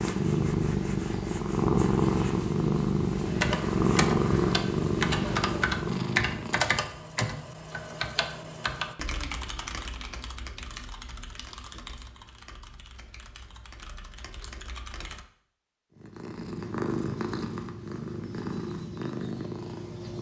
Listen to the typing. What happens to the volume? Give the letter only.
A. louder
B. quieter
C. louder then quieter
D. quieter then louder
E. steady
B.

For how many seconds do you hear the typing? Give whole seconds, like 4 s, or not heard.
12 s.